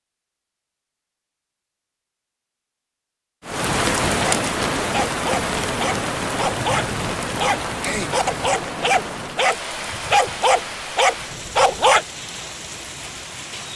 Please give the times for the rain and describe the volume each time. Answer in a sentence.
The rain can be heard from 3.4 to 13.7 s, getting quieter.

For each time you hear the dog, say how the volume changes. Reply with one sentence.
You can hear the dog from 4.2 to 12.1 s, getting louder.